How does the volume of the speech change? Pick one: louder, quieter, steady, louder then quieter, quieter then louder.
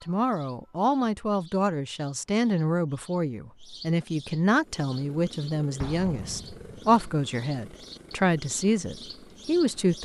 steady.